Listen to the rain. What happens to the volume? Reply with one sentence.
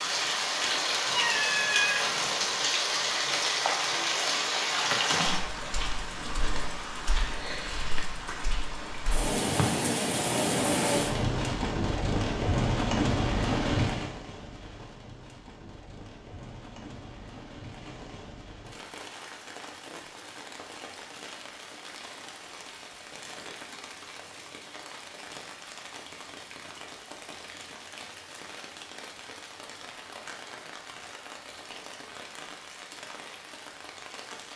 The loudness of the rain goes down.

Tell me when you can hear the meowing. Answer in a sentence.
The meowing can be heard from 1.1 to 2.5 s.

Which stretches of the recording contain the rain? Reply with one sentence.
You can hear the rain from 0.0 to 34.5 s.